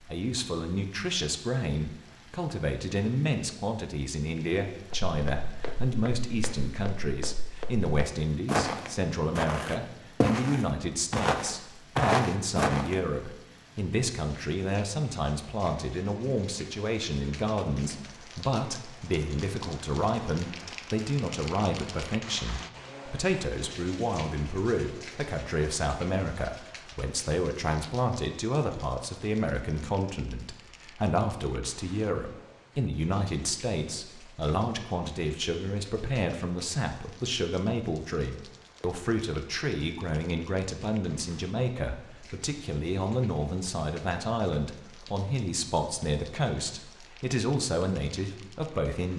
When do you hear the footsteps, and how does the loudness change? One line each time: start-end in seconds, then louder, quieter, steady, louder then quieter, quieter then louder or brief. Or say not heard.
4.9-13.0 louder.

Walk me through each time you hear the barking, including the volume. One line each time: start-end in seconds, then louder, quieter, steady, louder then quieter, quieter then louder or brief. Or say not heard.
not heard.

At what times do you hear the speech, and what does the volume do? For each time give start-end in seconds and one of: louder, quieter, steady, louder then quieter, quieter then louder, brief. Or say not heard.
0.0-49.1 steady.